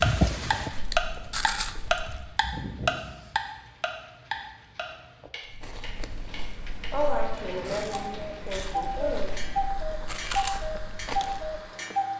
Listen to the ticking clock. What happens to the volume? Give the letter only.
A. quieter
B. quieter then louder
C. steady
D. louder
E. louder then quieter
B.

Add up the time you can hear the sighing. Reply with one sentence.
You can hear the sighing for 3 seconds altogether.